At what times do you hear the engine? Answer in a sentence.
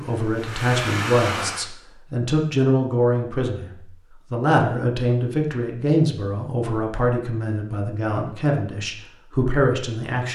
You can hear the engine from 0.0 to 1.6 s.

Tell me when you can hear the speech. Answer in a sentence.
You can hear the speech from 0.0 to 10.3 s.